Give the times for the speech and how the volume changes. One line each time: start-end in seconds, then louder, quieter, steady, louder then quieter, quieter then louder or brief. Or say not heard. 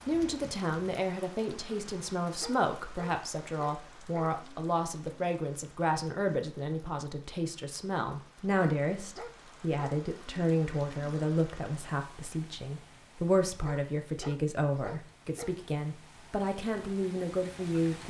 0.1-18.0 steady.